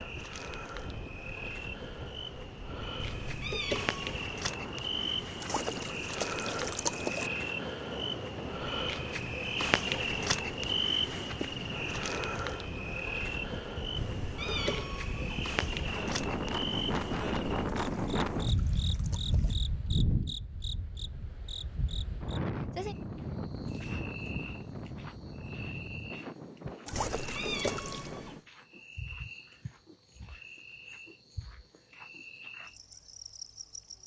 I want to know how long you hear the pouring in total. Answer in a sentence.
You can hear the pouring for 5 seconds altogether.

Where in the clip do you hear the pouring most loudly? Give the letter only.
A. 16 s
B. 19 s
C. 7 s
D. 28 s
C.